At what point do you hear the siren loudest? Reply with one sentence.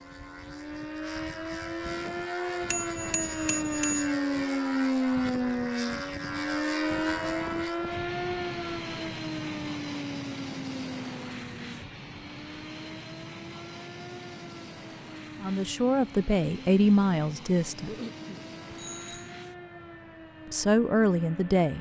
The volume of the siren peaks at 5 seconds.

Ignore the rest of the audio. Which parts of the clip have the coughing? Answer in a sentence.
The coughing can be heard from 17.9 to 18.4 s.